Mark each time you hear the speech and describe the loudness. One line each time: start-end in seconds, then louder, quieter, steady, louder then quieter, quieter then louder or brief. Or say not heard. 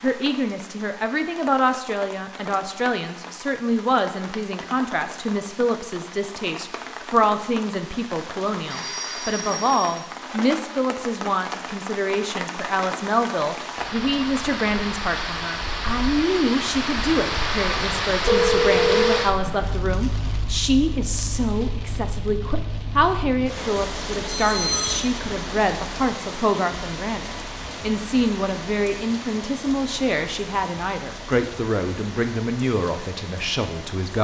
0.0-34.1 steady.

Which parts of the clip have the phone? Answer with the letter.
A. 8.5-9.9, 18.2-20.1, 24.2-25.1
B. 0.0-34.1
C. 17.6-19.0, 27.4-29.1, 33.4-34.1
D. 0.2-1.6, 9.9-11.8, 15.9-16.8
A.